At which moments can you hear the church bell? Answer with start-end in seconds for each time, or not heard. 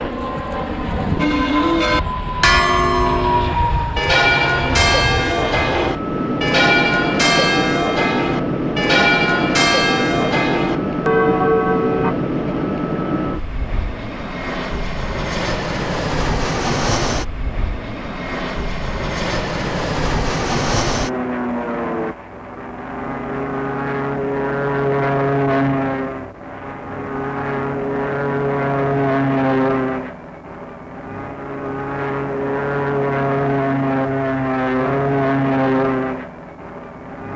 1.1-12.2.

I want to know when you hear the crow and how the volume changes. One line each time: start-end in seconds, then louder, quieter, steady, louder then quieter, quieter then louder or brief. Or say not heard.
not heard.